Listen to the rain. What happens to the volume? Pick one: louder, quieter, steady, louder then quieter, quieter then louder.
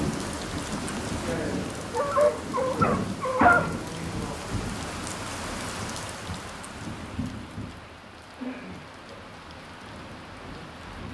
quieter.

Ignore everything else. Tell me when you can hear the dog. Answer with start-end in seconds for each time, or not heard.
1.9-3.8.